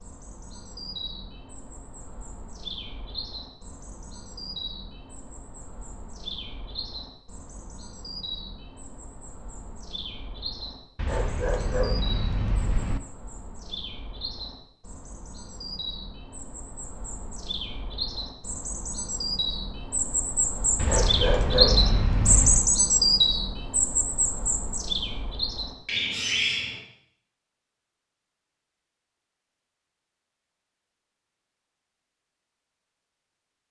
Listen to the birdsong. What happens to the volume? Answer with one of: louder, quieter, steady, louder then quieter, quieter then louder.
louder.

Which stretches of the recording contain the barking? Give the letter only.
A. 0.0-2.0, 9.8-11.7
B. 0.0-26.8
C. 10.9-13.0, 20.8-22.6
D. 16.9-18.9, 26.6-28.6
C.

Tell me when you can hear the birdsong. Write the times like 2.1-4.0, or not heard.
0.0-26.8.